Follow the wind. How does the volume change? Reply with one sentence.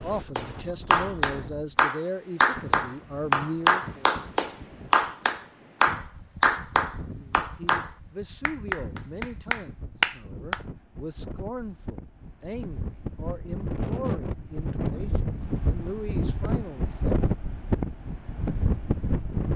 The volume of the wind goes up.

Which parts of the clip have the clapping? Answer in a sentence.
You can hear the clapping from 0.3 to 10.6 s.